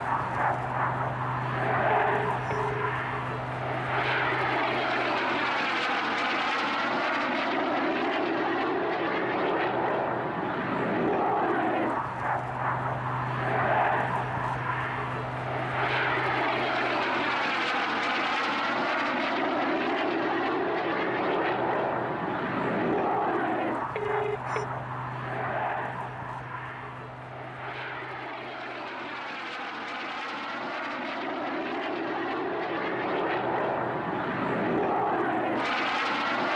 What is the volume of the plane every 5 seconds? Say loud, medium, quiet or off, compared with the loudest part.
loud, loud, loud, loud, loud, medium, loud, loud.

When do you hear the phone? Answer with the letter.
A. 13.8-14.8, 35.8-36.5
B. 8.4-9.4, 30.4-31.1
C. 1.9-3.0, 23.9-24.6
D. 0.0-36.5
C.